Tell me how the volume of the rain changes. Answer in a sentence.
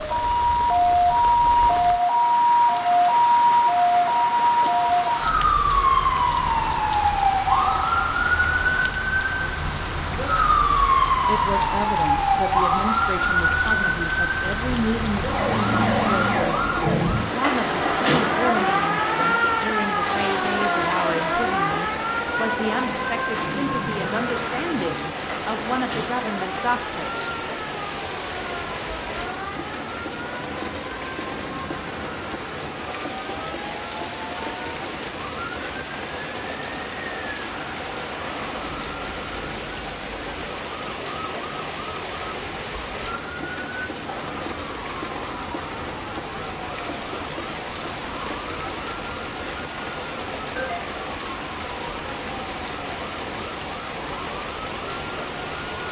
The loudness of the rain stays about the same.